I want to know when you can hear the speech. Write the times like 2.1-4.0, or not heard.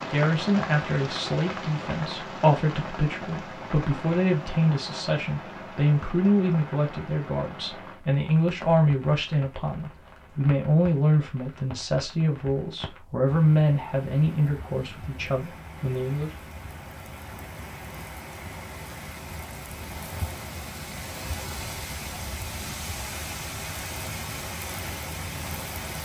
0.0-16.3.